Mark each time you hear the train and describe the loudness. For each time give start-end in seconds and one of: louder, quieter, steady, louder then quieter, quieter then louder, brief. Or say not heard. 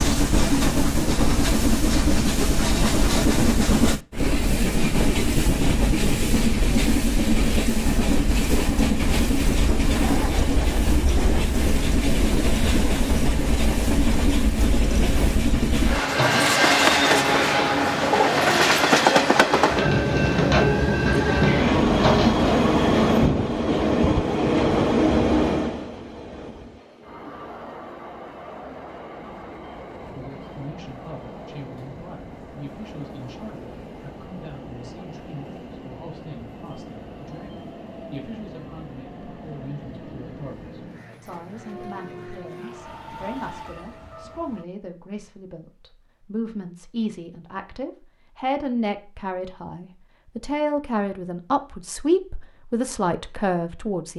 0.0-44.6 quieter.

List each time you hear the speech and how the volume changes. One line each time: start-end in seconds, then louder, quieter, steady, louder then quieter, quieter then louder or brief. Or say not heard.
29.9-54.1 louder.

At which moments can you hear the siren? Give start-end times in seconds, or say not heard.
not heard.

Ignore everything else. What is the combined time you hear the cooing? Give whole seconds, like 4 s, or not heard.
7 s.